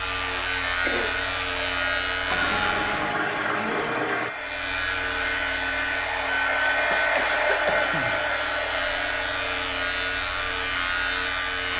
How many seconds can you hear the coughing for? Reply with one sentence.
The coughing can be heard for 2 seconds in total.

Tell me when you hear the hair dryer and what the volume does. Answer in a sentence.
You can hear the hair dryer from 0.0 to 11.7 s, getting louder then quieter.